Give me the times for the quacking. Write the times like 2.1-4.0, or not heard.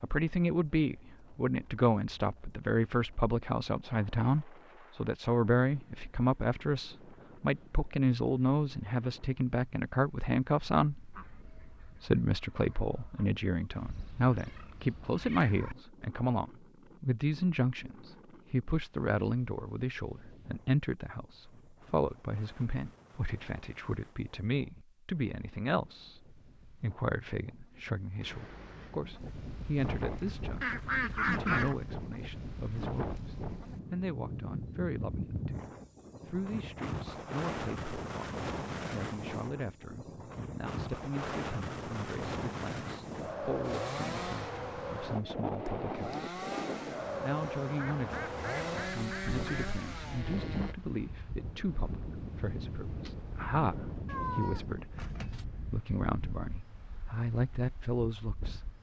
11.1-13.2, 30.1-31.8, 47.8-49.7.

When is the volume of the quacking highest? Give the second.
31 s.